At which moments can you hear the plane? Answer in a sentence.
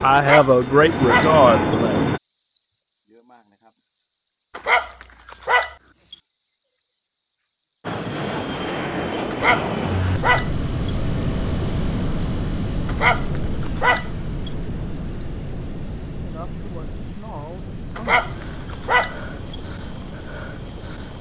You can hear the plane from 0.0 to 2.2 s and from 7.8 to 21.1 s.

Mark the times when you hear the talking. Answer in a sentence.
You can hear the talking from 0.0 to 1.9 s and from 16.1 to 18.2 s.